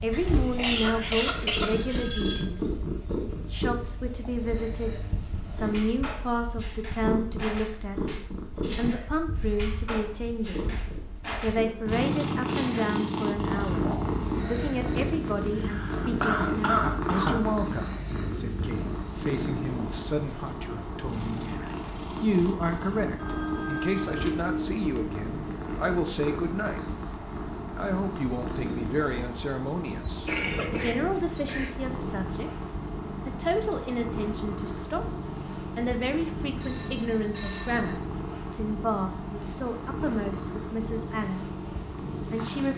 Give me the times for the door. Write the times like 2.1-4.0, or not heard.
not heard.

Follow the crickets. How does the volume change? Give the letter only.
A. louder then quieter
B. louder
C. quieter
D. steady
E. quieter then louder
C.